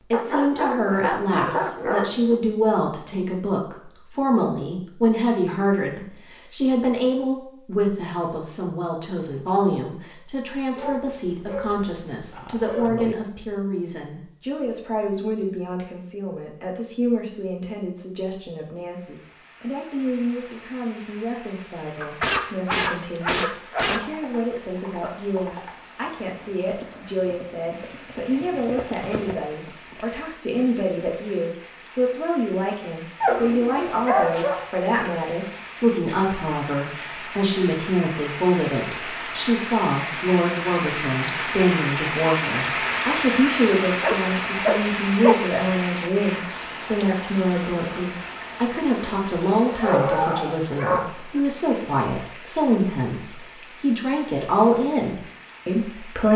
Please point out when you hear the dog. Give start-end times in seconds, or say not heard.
0.1-2.4, 10.8-13.2, 22.0-24.0, 33.2-34.7, 44.0-45.4, 49.6-51.4.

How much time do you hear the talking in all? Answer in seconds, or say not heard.
56 s.